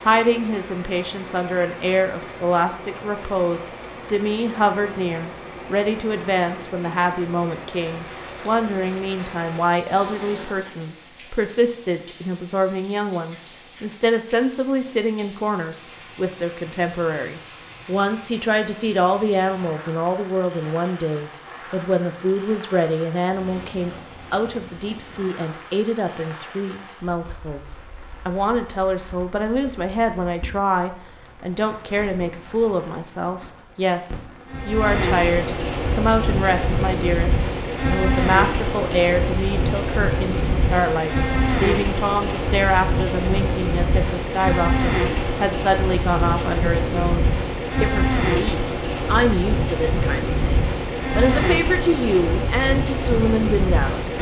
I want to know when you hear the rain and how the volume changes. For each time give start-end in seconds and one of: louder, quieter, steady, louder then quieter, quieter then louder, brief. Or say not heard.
0.0-54.1 louder.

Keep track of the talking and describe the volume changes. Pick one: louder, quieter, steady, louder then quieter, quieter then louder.
steady.